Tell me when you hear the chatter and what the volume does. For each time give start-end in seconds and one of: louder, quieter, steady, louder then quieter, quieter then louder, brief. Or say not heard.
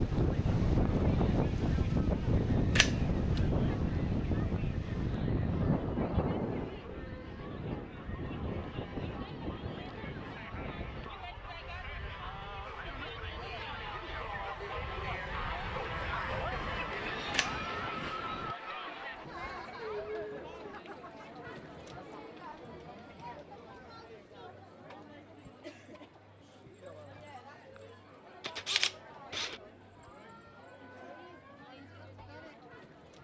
0.1-33.1 louder then quieter.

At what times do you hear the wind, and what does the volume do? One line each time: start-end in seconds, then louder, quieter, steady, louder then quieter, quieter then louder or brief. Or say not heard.
0.0-18.6 quieter then louder.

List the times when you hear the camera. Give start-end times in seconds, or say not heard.
2.8-3.5, 17.3-18.1, 28.4-29.6.